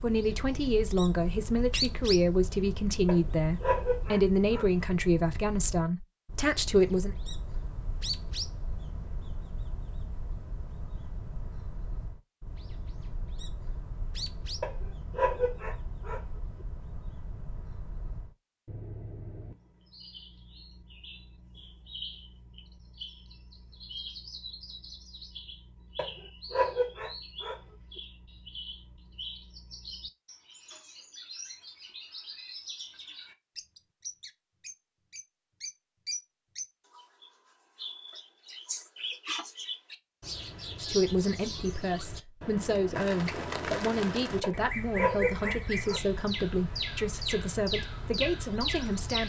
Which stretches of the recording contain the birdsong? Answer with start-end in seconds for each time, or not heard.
0.0-49.2.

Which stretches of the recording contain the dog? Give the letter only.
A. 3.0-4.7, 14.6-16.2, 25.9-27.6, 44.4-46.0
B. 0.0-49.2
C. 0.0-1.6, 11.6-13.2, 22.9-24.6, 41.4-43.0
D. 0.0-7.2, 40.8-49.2
A.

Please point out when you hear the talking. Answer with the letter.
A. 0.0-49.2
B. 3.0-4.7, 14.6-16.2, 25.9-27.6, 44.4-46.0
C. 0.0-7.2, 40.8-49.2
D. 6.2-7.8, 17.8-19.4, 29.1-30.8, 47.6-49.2
C.